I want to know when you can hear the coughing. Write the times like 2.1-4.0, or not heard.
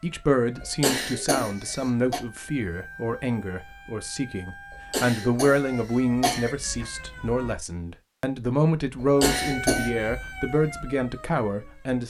0.6-2.2, 4.9-6.5, 8.9-9.9.